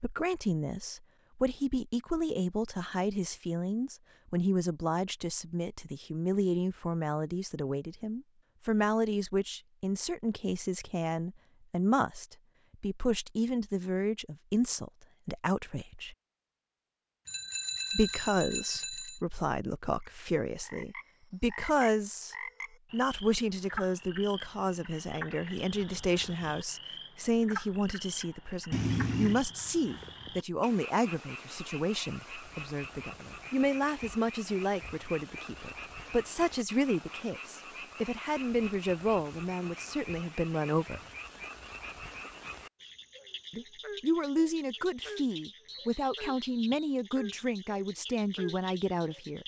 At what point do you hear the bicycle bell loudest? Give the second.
29 s.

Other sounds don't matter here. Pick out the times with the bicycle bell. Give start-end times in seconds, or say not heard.
17.2-19.2, 28.7-29.4.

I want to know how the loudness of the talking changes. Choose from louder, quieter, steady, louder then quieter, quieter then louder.
steady.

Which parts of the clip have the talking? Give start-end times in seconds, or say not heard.
0.0-16.1, 17.9-41.0, 43.5-49.4.